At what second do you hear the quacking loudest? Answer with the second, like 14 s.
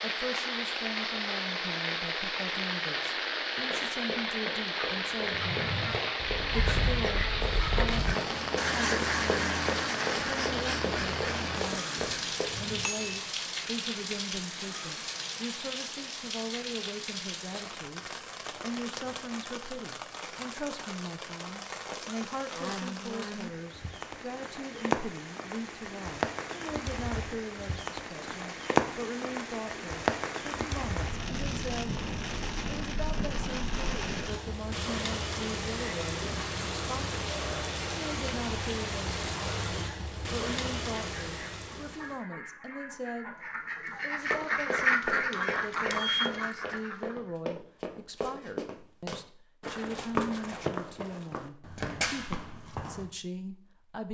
45 s.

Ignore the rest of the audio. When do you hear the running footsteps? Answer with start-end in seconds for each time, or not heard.
3.6-12.5, 44.3-53.1.